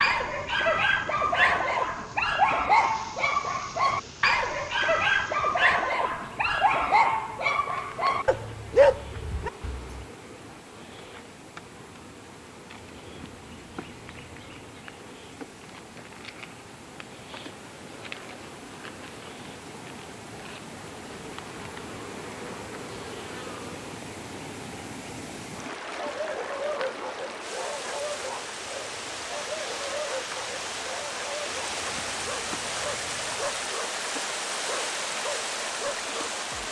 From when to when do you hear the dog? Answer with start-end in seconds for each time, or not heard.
0.0-10.1, 25.9-36.6.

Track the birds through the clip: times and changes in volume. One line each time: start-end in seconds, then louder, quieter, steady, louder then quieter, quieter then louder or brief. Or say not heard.
not heard.